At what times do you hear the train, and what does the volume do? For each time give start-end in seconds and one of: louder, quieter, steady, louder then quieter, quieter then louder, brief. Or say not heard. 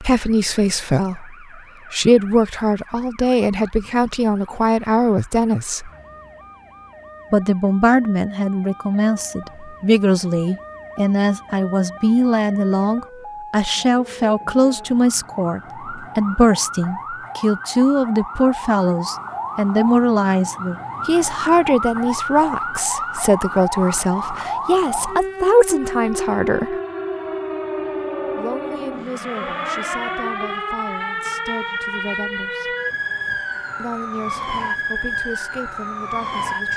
not heard.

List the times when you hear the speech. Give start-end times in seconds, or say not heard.
0.0-5.9, 7.3-26.8, 28.4-32.8, 33.8-36.7.